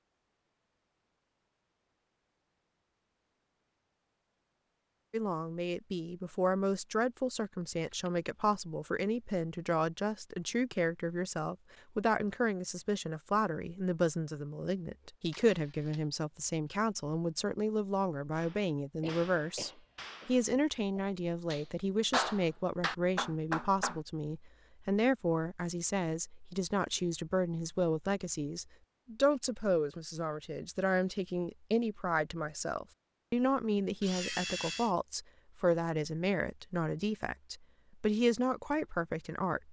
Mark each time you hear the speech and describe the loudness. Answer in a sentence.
You can hear the speech from 5.1 to 39.6 s, at a steady volume.